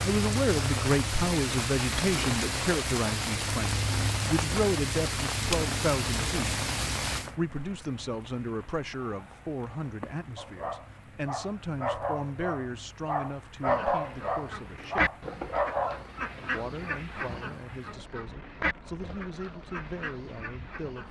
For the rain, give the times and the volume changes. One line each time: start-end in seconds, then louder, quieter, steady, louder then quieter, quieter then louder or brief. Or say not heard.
0.0-21.0 quieter.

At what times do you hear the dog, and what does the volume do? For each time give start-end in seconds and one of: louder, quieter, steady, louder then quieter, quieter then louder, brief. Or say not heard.
10.3-16.1 louder.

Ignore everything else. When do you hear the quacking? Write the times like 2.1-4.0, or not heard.
13.7-21.0.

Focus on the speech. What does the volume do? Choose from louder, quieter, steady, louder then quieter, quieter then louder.
quieter.